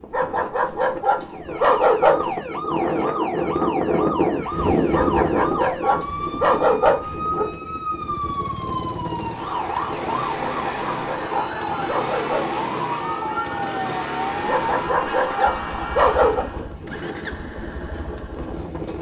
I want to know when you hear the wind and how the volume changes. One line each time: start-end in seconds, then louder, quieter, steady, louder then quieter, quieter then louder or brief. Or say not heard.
0.0-18.9 quieter.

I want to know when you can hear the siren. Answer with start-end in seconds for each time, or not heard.
1.2-16.6.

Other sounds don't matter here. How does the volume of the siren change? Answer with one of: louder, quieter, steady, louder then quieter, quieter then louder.
steady.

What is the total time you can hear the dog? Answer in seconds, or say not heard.
9 s.